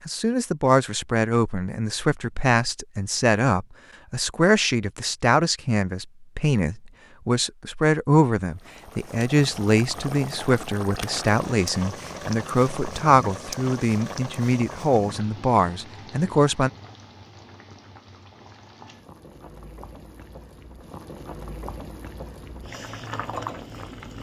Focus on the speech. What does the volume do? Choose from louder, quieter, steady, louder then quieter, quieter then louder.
steady.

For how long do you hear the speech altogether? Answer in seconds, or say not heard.
17 s.